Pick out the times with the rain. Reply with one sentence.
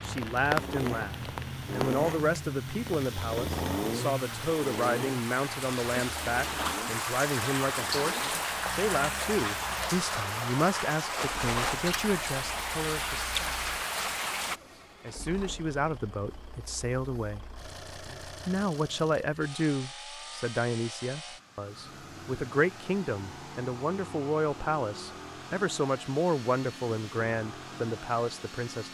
You can hear the rain from 0.0 to 14.6 s.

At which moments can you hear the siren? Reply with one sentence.
The siren can't be heard in this clip.